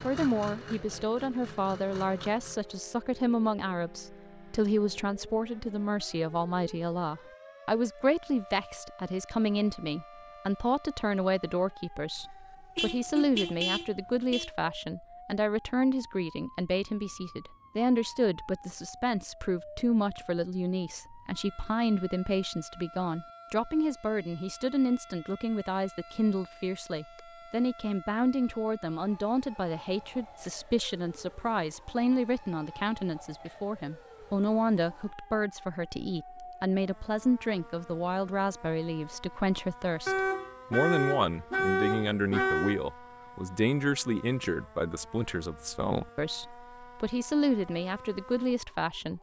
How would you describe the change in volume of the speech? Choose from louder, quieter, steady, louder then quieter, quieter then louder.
steady.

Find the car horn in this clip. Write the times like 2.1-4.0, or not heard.
12.2-14.5, 40.0-42.8.